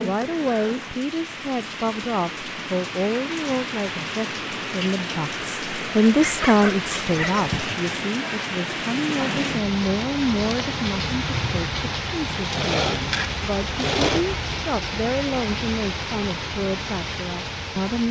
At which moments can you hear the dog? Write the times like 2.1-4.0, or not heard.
6.2-7.7.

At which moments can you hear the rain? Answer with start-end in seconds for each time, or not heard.
0.0-18.0.